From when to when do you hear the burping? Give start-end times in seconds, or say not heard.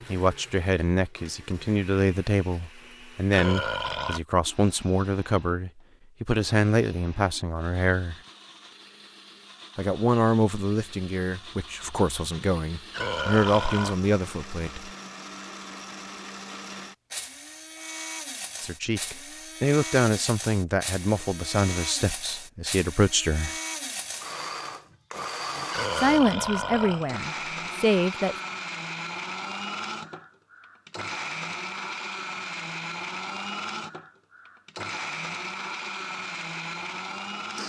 3.3-4.2, 12.9-13.9, 25.7-27.2.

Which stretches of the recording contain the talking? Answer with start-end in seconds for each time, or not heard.
0.1-8.2, 9.8-14.9, 18.6-23.6, 25.9-28.4.